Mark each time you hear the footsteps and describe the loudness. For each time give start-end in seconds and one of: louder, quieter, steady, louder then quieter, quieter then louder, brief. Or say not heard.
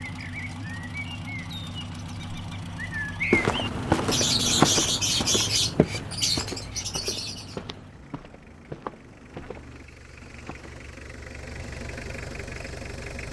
3.3-10.9 quieter.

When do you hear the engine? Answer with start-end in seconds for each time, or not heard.
0.0-13.2.